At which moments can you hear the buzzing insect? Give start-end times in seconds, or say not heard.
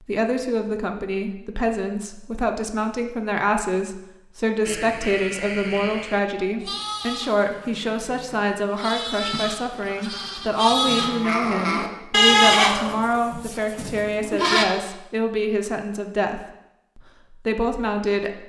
not heard.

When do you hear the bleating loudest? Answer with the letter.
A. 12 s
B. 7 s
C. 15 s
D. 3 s
A.